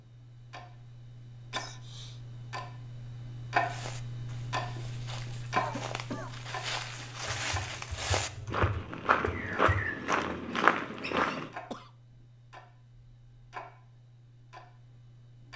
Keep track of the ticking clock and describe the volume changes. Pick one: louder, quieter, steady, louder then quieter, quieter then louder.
louder then quieter.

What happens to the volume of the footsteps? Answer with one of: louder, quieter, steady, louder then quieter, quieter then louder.
louder.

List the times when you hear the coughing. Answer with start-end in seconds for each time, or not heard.
1.5-2.2, 5.5-6.3, 11.2-11.9.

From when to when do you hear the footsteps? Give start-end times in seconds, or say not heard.
3.5-11.5.